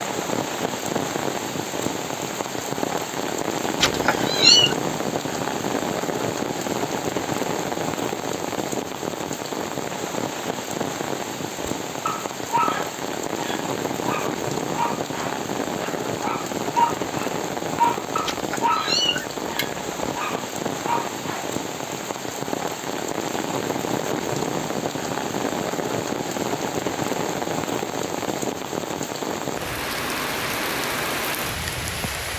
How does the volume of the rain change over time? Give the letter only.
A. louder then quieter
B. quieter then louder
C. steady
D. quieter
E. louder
C.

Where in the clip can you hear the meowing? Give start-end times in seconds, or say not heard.
3.8-4.8, 18.2-20.1.